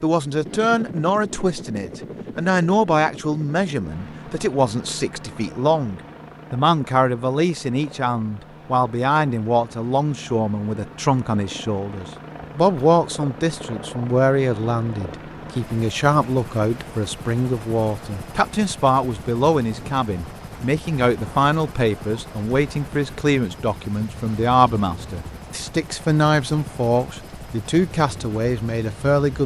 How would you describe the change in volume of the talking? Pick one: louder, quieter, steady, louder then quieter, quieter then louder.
steady.